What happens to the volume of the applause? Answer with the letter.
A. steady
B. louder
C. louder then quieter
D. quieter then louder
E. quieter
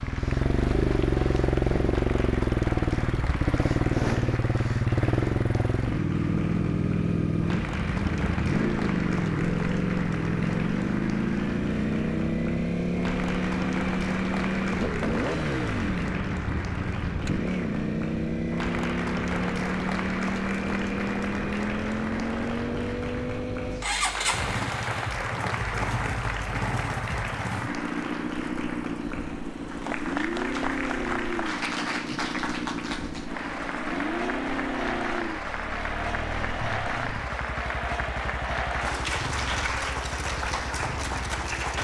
B.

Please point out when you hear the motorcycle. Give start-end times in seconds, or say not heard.
0.0-41.8.